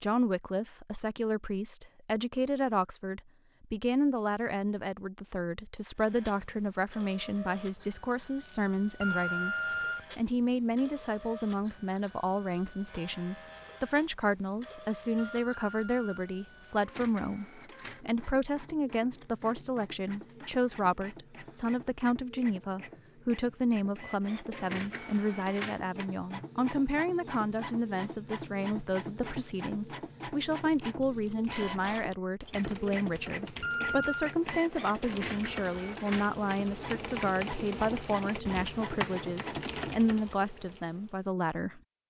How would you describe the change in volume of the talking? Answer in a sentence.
The loudness of the talking stays about the same.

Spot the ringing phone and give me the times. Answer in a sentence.
The ringing phone can be heard from 9.0 to 10.1 s, from 15.2 to 16.3 s and from 33.6 to 34.4 s.